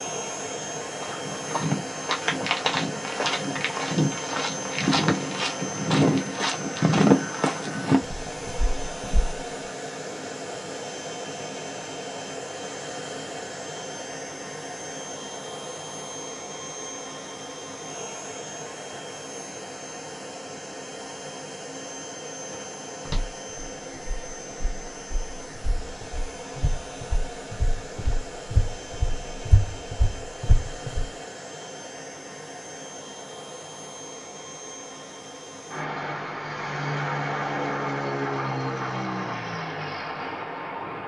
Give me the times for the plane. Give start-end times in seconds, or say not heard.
0.0-41.0.